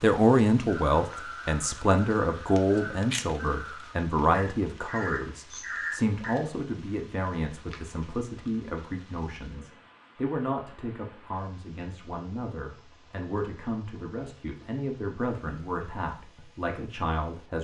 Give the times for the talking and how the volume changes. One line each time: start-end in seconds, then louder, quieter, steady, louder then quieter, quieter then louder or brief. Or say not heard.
0.0-17.5 quieter.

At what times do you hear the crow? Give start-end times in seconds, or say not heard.
0.8-6.5.